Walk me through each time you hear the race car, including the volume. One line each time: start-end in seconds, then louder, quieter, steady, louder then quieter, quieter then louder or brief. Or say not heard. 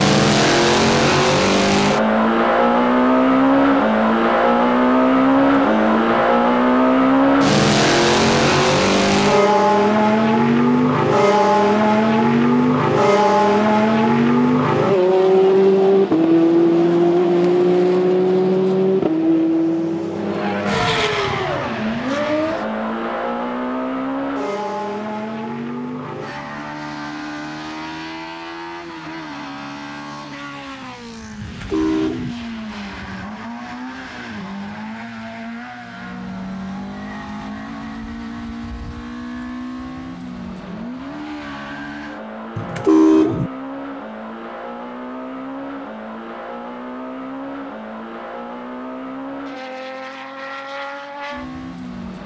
0.0-52.2 quieter.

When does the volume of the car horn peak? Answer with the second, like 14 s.
43 s.